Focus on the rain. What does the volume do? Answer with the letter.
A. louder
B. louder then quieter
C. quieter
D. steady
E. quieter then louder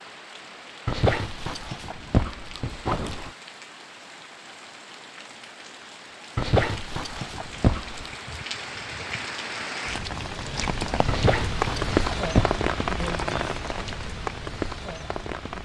A.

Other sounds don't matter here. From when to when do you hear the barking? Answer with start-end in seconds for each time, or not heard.
0.8-3.3, 6.3-8.1, 11.1-12.6.